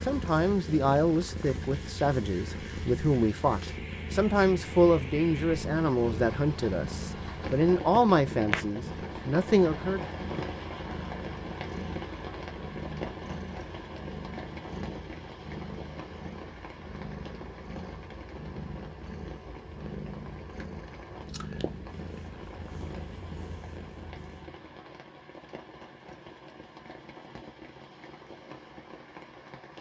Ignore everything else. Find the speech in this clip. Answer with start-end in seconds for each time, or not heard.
0.0-10.1.